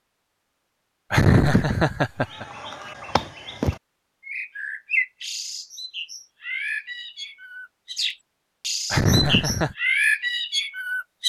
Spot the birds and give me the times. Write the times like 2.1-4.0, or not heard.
2.2-11.2.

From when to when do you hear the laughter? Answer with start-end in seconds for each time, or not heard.
1.1-2.5, 8.9-9.8.